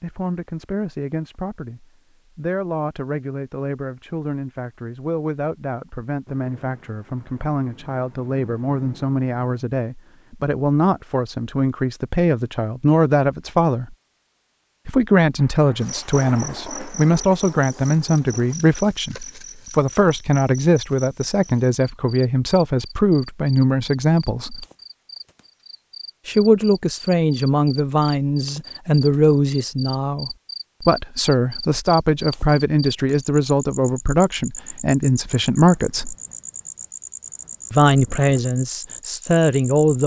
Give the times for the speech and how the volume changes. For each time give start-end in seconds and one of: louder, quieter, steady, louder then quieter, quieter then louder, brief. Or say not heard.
0.0-13.9 louder
14.8-24.6 steady
26.2-36.1 steady
37.7-40.0 brief.